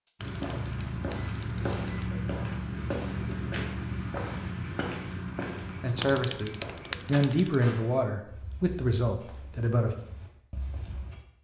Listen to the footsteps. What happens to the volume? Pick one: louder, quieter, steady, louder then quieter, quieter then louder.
quieter.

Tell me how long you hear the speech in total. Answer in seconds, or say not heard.
4 s.